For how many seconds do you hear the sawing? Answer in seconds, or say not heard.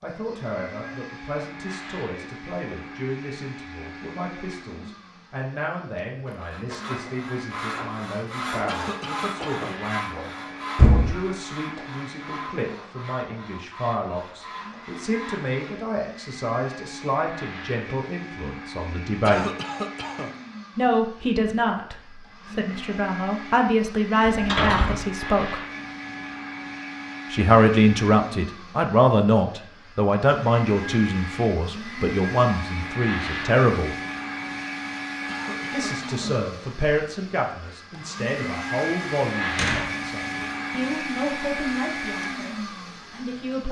10 s.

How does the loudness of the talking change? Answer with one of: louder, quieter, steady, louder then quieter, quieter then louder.
louder then quieter.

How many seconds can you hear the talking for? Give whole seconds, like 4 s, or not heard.
39 s.